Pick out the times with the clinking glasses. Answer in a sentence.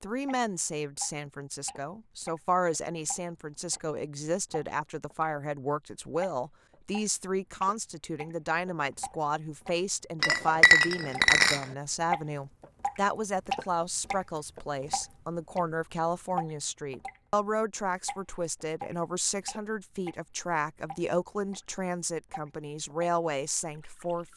The clinking glasses can be heard from 10.2 to 11.7 s.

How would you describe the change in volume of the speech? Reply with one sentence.
The volume of the speech stays about the same.